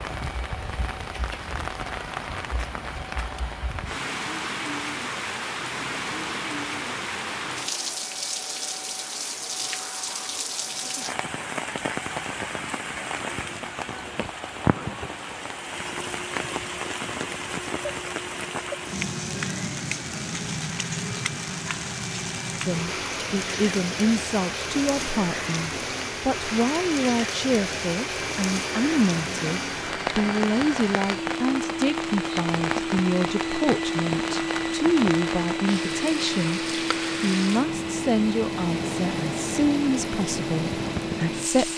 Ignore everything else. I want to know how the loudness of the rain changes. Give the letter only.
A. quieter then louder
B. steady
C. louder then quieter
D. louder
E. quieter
B.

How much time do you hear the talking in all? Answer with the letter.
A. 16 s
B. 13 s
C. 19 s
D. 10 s
C.